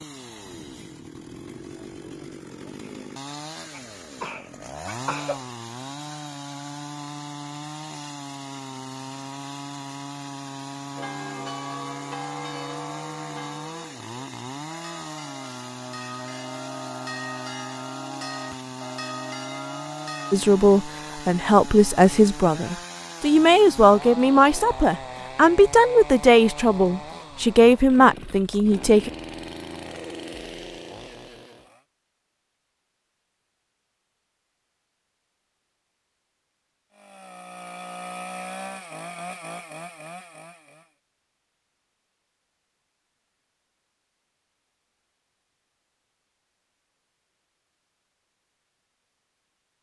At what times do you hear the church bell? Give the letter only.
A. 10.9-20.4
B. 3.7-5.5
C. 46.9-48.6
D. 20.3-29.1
A.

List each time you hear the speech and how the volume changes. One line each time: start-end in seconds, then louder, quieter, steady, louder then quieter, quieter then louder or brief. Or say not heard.
20.3-29.1 steady.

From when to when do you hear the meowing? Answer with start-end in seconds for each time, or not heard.
not heard.